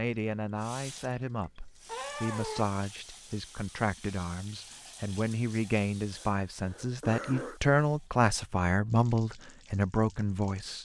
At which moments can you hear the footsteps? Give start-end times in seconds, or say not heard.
not heard.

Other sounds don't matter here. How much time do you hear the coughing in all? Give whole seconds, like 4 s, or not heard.
2 s.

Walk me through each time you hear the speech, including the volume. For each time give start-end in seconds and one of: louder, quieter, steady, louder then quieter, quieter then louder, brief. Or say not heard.
0.0-10.7 louder.